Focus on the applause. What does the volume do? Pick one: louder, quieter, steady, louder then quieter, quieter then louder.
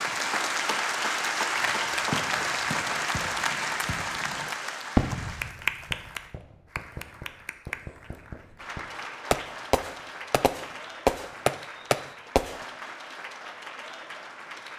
quieter.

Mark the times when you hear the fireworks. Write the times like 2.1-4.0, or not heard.
1.6-12.6.